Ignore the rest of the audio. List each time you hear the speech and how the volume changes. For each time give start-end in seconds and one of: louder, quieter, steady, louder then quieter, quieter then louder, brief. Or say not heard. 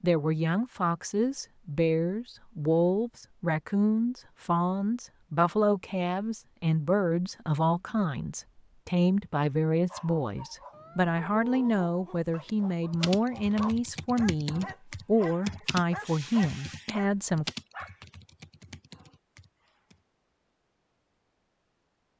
0.0-17.5 steady.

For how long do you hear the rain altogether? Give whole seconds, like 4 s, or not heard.
not heard.